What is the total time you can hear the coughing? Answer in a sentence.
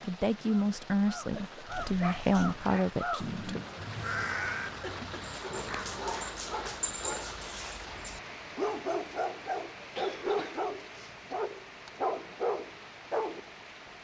You can hear the coughing for 2 seconds altogether.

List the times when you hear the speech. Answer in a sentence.
You can hear the speech from 0.0 to 3.6 s.